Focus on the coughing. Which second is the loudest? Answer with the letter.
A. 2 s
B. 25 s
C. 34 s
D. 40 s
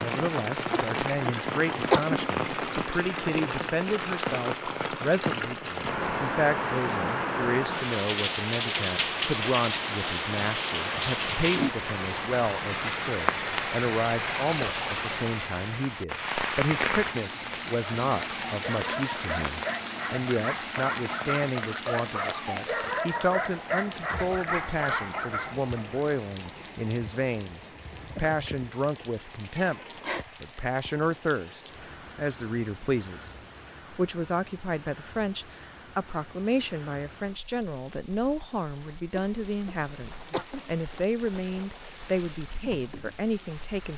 A.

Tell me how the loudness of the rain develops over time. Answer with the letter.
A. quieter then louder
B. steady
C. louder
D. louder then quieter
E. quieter
E.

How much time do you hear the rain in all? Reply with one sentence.
The rain can be heard for 44 seconds in total.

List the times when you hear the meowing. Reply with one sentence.
The meowing can be heard from 29.6 to 30.2 s.